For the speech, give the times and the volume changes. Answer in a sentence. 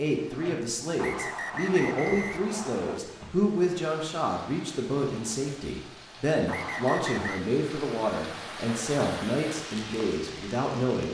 You can hear the speech from 0.0 to 11.1 s, at a steady volume.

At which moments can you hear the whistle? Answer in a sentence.
You can hear the whistle from 0.9 to 3.0 s and from 6.5 to 7.5 s.